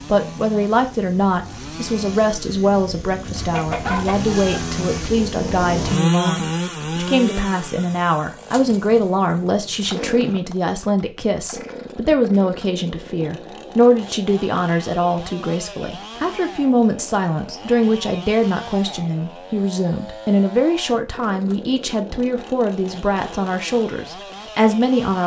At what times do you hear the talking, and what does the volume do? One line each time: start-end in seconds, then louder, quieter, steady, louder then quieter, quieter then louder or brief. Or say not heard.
0.1-25.2 steady.